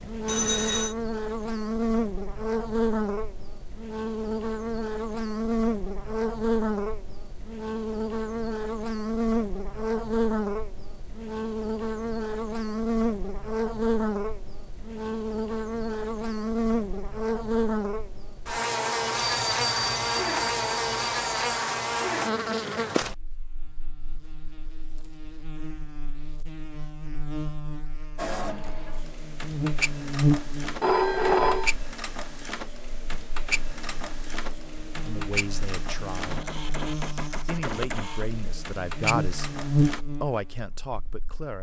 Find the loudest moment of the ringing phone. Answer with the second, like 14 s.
31 s.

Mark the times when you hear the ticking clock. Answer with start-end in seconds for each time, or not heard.
not heard.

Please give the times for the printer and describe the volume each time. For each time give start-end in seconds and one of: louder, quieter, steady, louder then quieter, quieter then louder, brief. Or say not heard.
28.1-40.0 steady.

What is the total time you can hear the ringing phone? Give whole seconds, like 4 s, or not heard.
4 s.